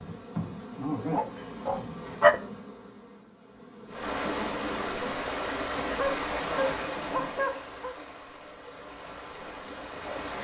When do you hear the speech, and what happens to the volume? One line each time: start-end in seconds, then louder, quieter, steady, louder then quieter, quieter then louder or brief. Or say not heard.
not heard.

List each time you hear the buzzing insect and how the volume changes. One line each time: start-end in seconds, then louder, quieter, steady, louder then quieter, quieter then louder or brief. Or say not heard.
0.0-5.3 quieter then louder.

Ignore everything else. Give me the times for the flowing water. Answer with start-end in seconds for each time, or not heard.
3.9-10.4.